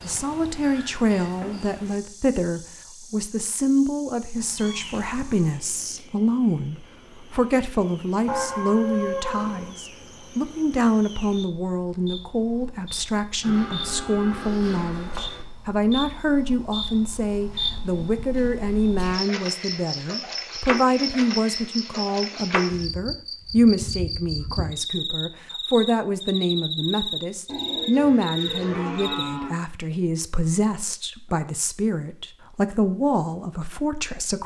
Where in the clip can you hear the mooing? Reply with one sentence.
The mooing can be heard from 8.2 to 9.7 s, from 13.4 to 15.4 s and from 27.4 to 29.5 s.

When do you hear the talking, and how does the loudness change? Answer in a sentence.
The talking can be heard from 0.0 to 34.4 s, at a steady volume.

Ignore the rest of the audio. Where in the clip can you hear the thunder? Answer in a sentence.
You can't hear the thunder here.